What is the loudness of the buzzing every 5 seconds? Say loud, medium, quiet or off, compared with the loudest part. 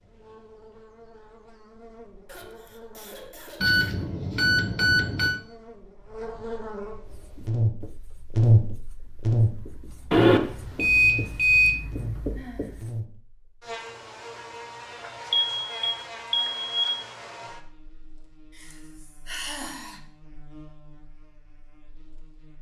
quiet, loud, medium, quiet, quiet.